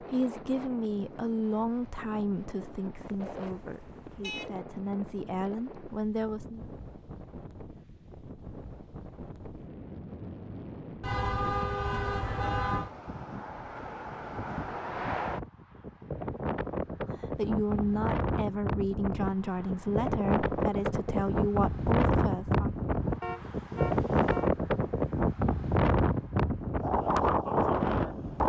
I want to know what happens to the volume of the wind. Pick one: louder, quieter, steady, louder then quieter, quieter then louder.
louder.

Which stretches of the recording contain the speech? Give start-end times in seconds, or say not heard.
0.0-6.7, 17.1-22.8.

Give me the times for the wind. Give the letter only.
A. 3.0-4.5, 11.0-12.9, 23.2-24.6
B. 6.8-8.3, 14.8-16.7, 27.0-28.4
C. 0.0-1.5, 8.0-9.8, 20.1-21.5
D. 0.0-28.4
D.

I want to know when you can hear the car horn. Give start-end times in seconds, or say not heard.
3.0-4.5, 11.0-12.9, 23.2-24.6.